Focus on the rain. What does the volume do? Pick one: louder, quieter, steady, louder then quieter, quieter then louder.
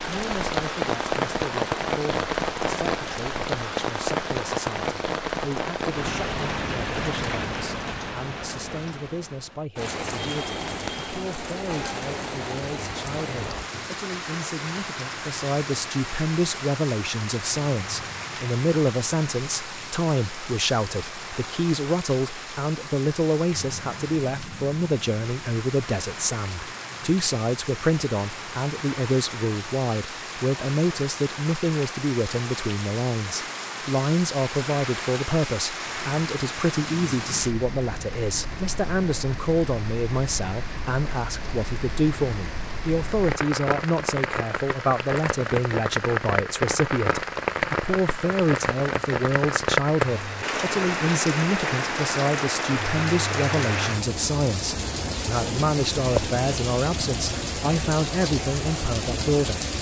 quieter then louder.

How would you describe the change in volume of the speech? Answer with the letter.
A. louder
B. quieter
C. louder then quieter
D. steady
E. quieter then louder
A.